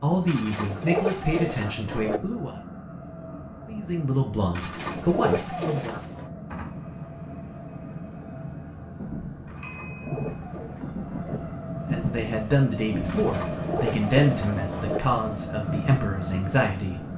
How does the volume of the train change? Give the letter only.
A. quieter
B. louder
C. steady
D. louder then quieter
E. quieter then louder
B.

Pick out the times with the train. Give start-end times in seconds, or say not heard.
0.0-17.1.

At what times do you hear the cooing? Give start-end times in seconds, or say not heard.
0.2-2.2, 4.5-6.2, 9.4-11.4, 13.1-15.0.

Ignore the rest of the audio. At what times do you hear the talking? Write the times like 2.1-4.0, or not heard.
0.0-2.5, 3.6-6.0, 11.9-17.1.